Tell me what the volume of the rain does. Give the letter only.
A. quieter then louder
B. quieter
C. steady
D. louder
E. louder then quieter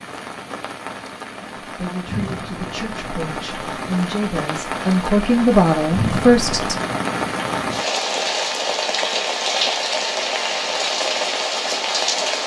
D.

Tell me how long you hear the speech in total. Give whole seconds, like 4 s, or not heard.
5 s.